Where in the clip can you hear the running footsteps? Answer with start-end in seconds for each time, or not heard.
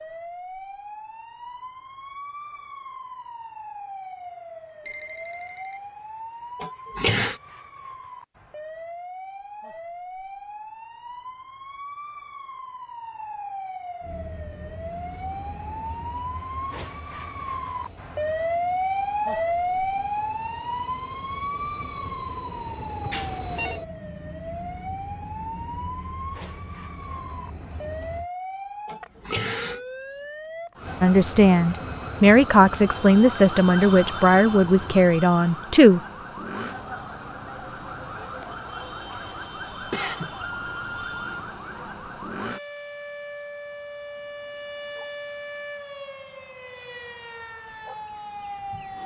not heard.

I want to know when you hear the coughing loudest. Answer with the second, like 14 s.
7 s.